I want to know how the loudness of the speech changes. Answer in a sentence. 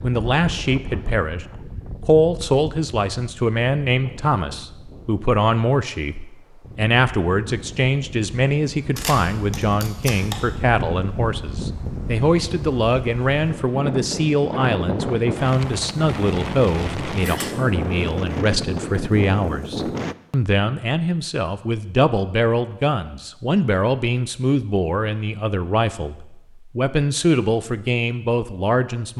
The volume of the speech stays about the same.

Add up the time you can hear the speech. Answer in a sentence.
The speech can be heard for 29 seconds in total.